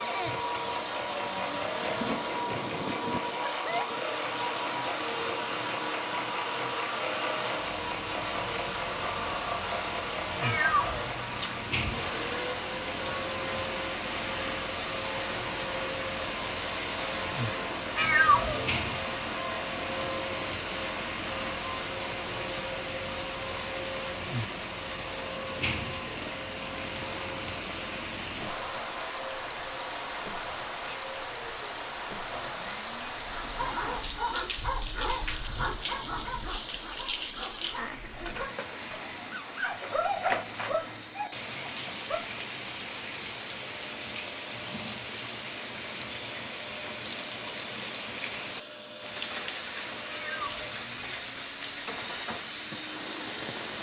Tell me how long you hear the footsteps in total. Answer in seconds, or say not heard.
not heard.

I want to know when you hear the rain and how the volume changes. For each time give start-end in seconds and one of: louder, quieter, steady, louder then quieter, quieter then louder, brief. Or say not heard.
0.0-53.7 steady.